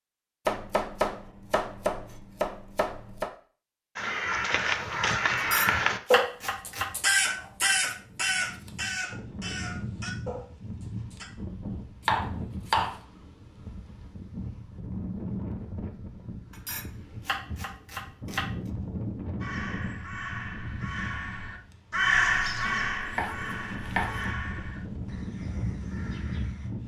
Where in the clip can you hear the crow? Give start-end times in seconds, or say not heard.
4.0-11.2, 19.4-26.7.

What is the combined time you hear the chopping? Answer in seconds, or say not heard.
9 s.